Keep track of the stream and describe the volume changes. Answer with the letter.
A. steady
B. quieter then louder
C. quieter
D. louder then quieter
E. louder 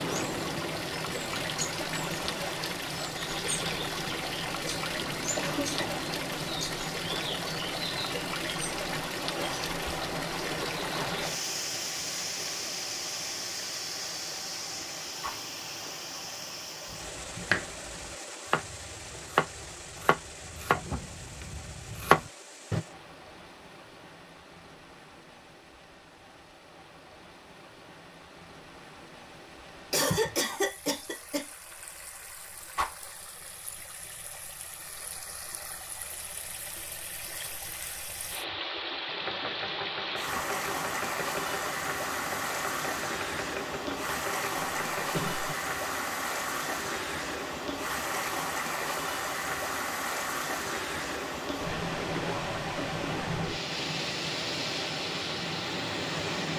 B.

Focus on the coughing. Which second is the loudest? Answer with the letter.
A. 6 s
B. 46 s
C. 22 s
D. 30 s
D.